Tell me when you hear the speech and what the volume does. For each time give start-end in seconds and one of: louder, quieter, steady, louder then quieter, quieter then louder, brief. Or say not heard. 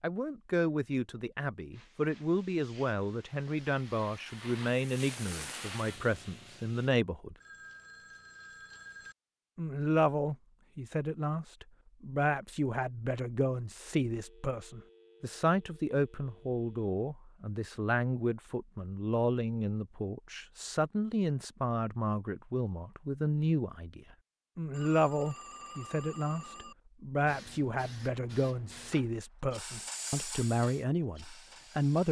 0.0-7.3 steady
9.6-32.0 steady.